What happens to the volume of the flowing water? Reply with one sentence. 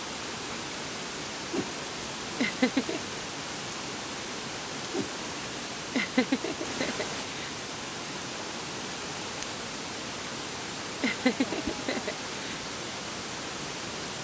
The loudness of the flowing water stays about the same.